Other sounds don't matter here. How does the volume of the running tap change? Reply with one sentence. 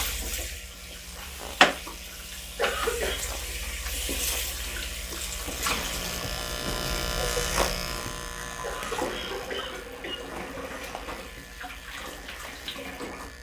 The volume of the running tap goes down.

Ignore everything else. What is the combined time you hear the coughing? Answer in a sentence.
You can hear the coughing for 2 seconds altogether.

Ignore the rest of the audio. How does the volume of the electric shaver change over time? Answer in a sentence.
The volume of the electric shaver goes up, then down.